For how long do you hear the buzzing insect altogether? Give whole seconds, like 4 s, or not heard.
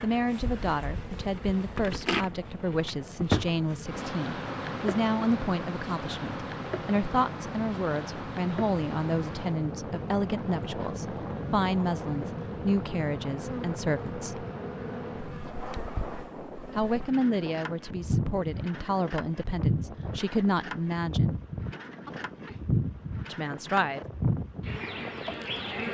26 s.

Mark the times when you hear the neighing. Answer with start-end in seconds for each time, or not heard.
22.0-22.6.